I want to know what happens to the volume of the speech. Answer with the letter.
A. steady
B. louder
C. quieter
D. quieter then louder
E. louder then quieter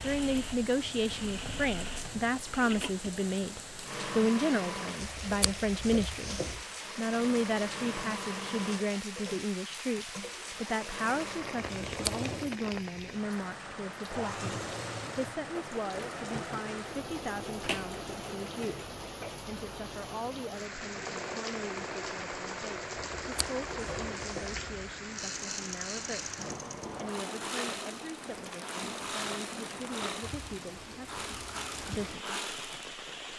C.